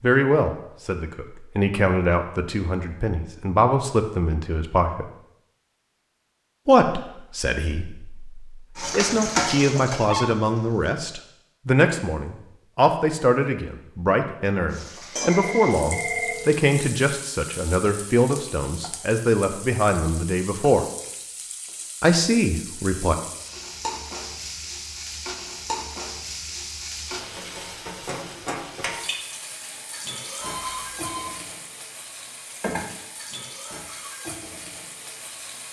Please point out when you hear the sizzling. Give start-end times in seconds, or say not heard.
8.8-10.9, 14.7-35.6.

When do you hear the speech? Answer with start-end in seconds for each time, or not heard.
0.0-5.1, 6.7-20.9, 22.0-23.1.